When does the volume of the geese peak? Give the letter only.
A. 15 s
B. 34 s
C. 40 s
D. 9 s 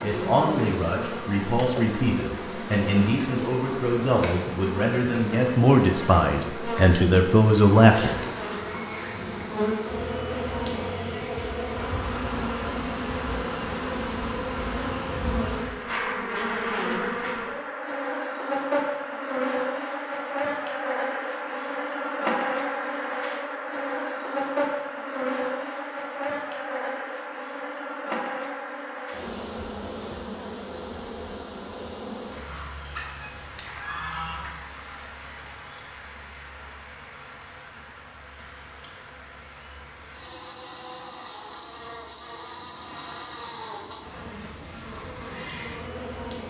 B.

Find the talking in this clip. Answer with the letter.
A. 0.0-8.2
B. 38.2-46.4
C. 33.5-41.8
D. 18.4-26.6
A.